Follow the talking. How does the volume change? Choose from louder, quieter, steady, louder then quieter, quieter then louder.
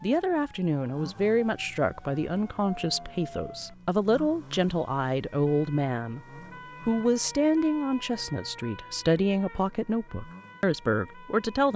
steady.